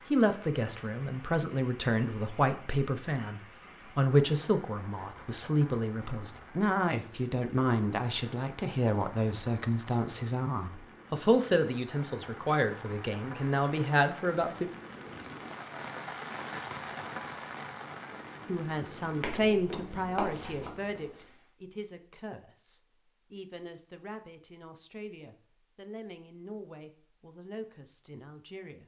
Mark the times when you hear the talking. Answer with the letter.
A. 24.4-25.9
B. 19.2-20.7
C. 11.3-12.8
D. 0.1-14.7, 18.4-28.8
D.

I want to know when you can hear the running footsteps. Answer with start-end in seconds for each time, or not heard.
19.2-20.7.